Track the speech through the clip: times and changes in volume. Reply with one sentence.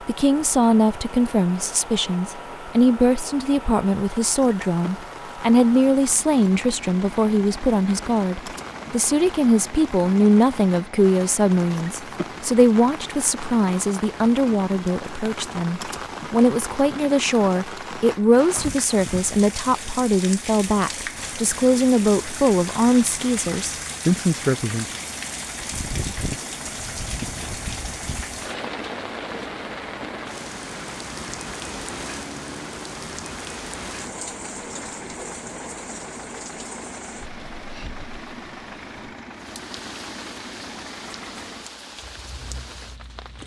The speech can be heard from 0.1 to 24.9 s, at a steady volume.